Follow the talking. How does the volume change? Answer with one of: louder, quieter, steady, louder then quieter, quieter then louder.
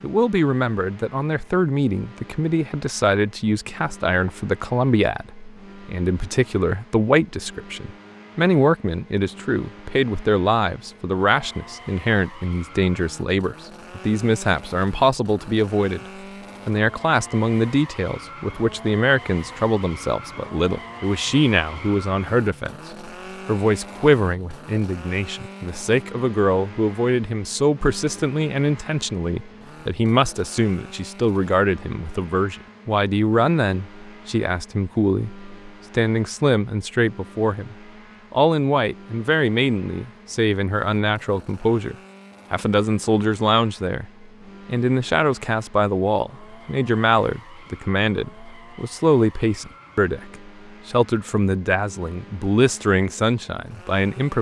steady.